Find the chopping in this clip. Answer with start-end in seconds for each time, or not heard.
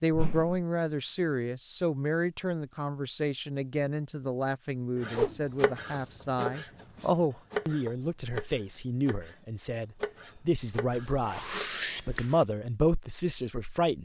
5.0-9.4, 10.0-12.2.